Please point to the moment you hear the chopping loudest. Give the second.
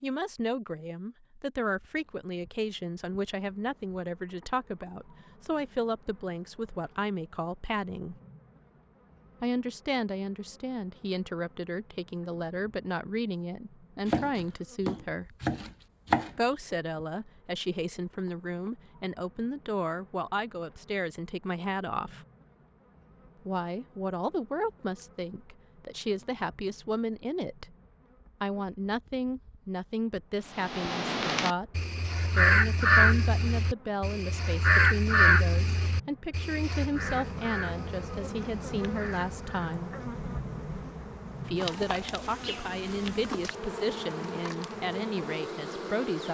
16 s.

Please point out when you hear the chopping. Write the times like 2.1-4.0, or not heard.
14.1-16.8.